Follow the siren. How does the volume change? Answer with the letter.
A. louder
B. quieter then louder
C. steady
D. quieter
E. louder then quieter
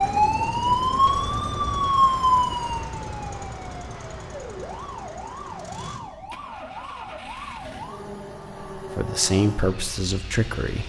D.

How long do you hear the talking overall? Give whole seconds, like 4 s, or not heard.
2 s.